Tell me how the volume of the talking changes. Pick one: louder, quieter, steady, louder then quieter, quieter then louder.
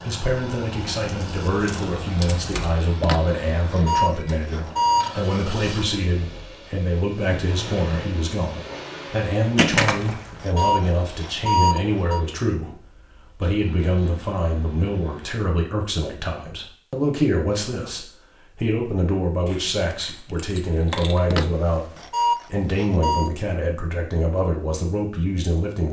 steady.